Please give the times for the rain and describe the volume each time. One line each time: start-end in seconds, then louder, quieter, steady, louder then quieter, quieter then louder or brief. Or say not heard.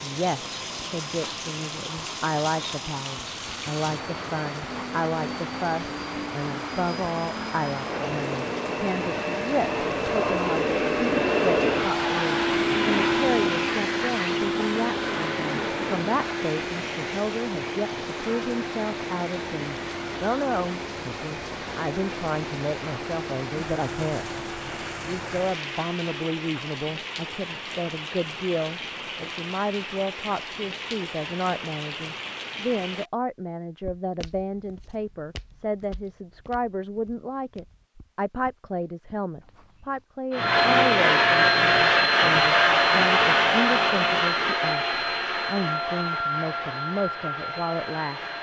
0.0-33.1 steady.